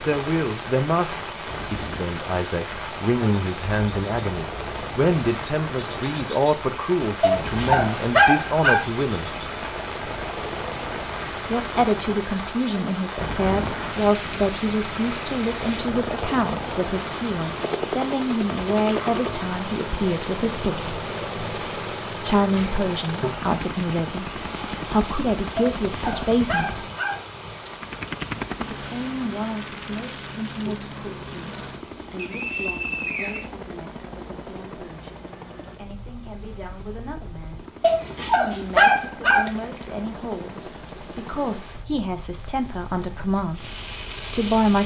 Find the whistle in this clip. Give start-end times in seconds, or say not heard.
32.1-33.5.